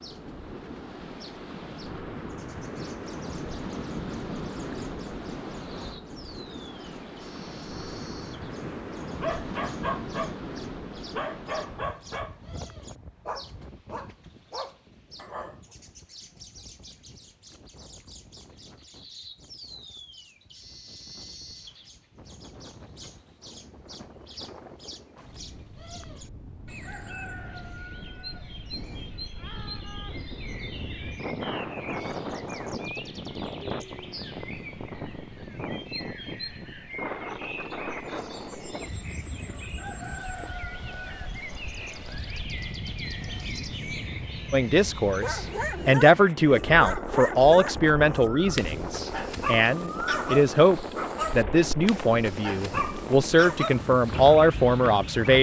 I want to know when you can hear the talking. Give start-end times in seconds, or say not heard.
44.5-55.3.